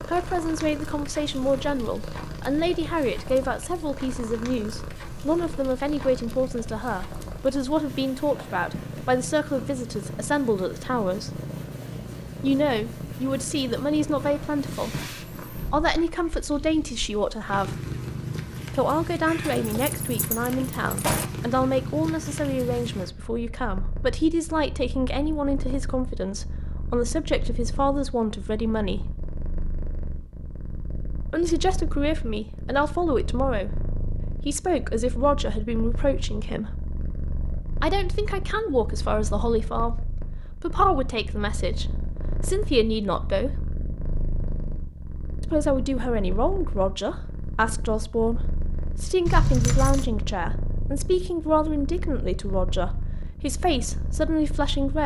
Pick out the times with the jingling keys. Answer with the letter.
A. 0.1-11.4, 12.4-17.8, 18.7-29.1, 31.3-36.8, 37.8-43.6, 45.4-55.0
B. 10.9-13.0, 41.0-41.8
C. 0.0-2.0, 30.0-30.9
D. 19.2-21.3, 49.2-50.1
D.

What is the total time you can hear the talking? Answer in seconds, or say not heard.
48 s.